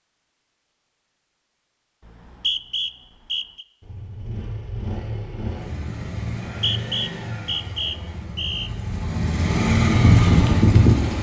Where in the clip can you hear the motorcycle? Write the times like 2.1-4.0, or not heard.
3.8-11.1.